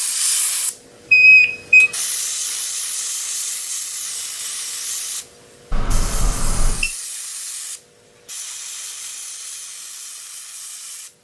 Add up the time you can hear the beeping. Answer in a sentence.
You can hear the beeping for 2 seconds altogether.